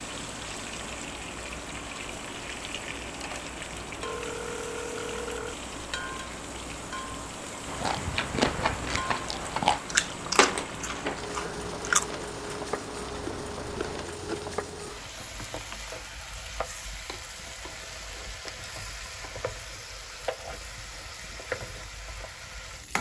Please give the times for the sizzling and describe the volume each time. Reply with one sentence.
You can hear the sizzling from 0.0 to 22.9 s, at a steady volume.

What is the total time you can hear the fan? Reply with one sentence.
The fan can be heard for 23 seconds in total.